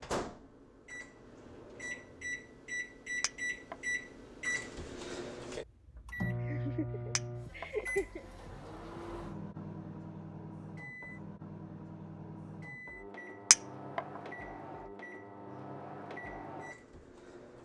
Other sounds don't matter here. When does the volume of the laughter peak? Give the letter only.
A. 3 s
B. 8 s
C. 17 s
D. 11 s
B.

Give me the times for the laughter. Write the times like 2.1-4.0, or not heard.
6.4-8.2.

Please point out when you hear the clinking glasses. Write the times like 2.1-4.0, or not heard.
3.2-3.8, 7.2-7.7, 13.5-14.0.